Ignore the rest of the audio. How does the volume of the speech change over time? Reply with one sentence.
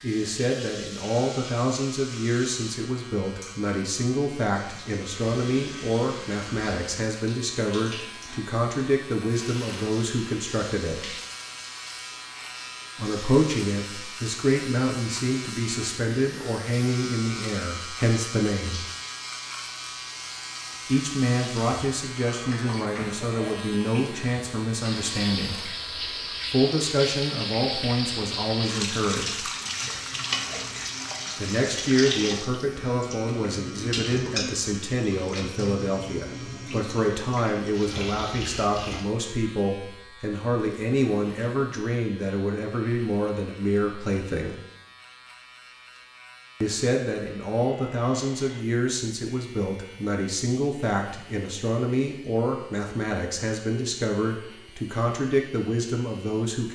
The loudness of the speech stays about the same.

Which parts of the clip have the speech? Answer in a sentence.
The speech can be heard from 0.0 to 11.2 s, from 12.9 to 18.9 s, from 20.9 to 25.7 s, from 26.4 to 29.4 s, from 31.4 to 44.6 s and from 46.6 to 56.6 s.